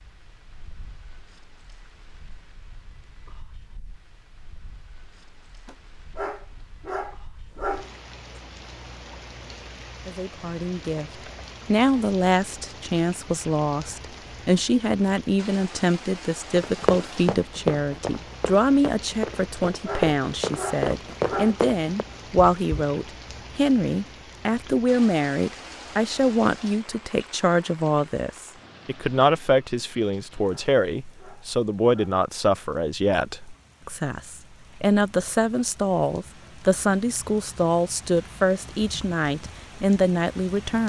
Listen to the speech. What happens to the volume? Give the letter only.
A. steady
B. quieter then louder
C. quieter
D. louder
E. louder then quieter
A.